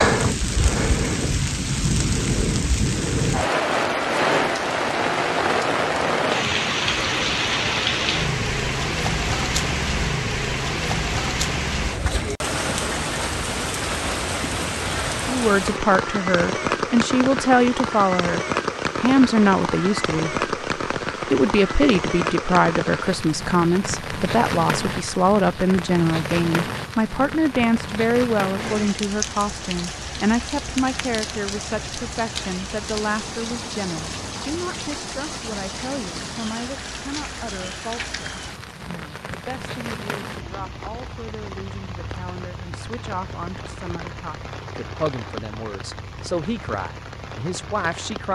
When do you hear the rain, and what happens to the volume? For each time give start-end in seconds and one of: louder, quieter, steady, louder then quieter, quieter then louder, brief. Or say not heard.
0.0-48.2 quieter.